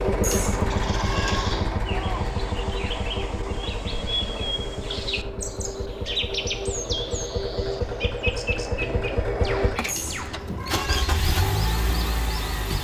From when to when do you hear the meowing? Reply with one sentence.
The meowing can be heard from 0.2 to 1.6 s and from 9.8 to 11.1 s.